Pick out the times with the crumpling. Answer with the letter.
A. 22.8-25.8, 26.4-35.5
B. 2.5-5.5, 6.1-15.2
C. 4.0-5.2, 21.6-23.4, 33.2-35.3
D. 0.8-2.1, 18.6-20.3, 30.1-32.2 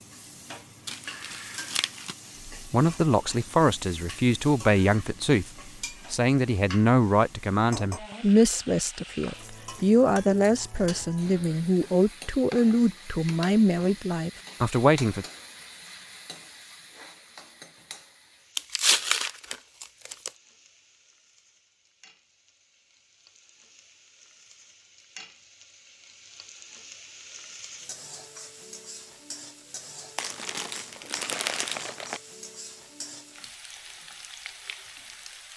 D.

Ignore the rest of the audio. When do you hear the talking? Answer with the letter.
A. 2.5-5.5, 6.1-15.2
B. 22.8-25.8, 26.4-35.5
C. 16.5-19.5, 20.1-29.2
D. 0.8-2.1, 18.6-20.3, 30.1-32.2
A.